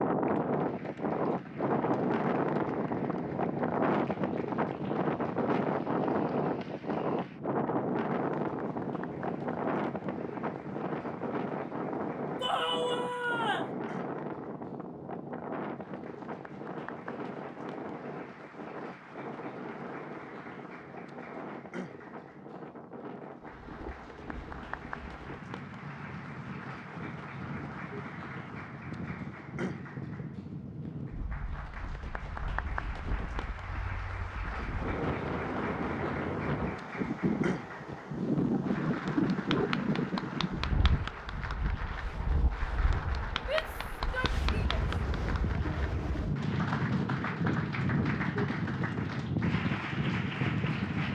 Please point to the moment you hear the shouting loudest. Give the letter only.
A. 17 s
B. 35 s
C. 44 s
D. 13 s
D.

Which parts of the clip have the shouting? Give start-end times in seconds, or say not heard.
12.4-13.8, 43.4-44.9.